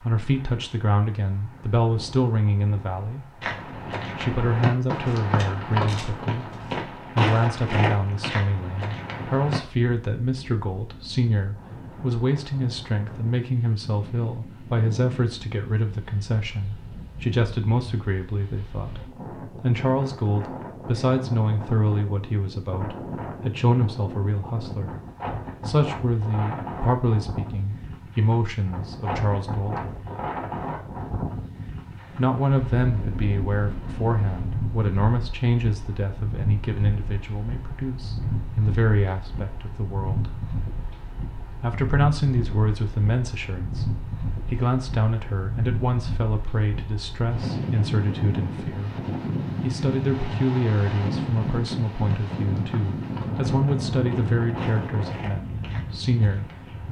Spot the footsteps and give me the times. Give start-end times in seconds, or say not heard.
3.4-9.6, 51.5-56.8.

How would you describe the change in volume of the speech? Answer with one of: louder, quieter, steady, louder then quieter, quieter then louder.
steady.